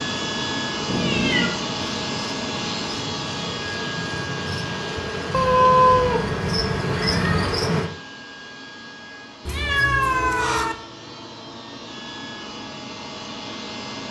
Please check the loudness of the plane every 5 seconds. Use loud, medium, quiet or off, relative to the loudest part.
loud, medium, medium.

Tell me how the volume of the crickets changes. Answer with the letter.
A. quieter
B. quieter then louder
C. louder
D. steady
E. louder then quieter
C.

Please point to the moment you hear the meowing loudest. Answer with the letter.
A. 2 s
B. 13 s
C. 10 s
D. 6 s
D.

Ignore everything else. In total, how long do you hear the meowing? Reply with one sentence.
You can hear the meowing for 4 seconds altogether.